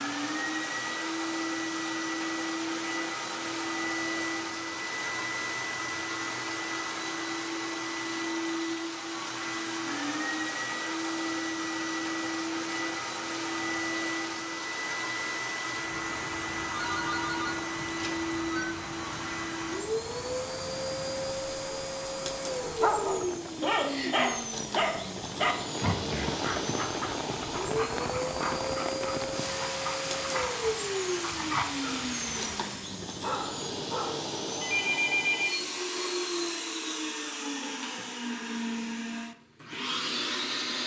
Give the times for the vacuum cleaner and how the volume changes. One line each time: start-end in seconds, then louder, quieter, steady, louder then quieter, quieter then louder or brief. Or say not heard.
0.0-40.8 steady.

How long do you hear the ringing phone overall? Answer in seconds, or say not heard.
3 s.